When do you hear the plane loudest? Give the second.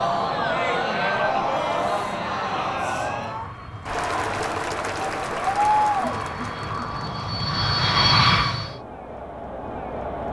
8 s.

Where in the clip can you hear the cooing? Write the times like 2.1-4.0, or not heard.
not heard.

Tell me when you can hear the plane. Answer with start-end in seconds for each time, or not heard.
0.0-8.8.